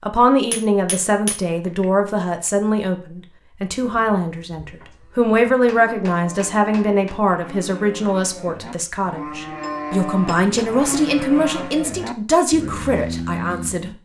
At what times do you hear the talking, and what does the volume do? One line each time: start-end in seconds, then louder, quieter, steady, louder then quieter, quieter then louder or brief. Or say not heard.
0.0-13.9 steady.